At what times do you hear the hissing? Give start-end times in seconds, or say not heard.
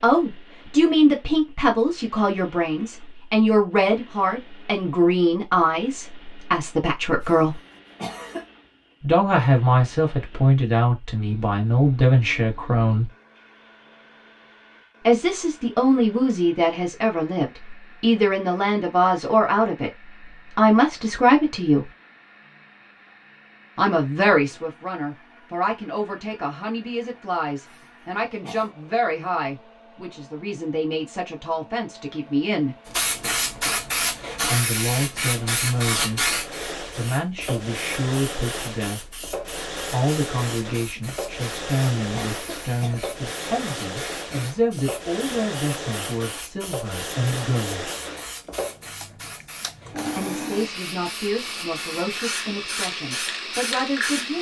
32.9-54.3.